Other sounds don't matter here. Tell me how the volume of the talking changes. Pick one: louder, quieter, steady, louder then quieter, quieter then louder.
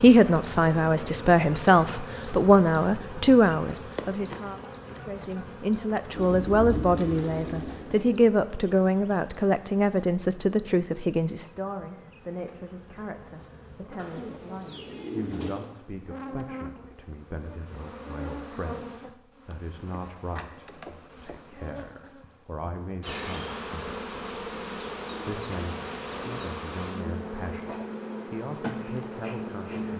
quieter.